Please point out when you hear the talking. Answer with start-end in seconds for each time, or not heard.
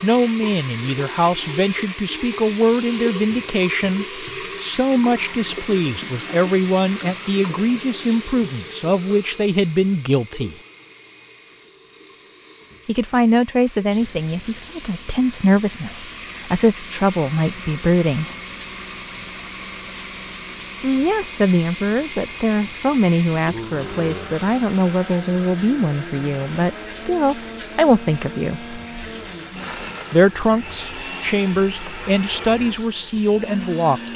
0.0-10.6, 12.8-18.4, 20.8-28.8, 30.1-34.1.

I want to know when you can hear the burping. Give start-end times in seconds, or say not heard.
23.3-24.4.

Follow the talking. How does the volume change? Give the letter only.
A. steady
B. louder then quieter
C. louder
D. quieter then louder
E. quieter
A.